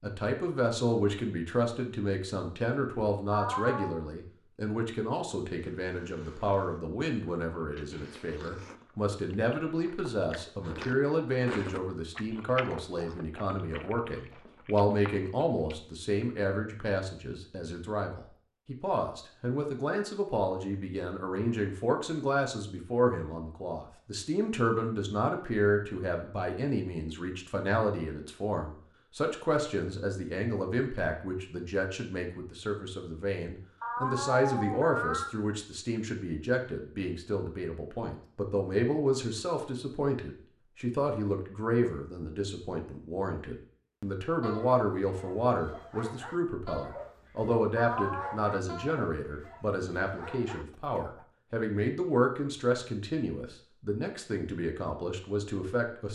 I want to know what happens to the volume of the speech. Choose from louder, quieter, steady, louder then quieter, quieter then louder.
steady.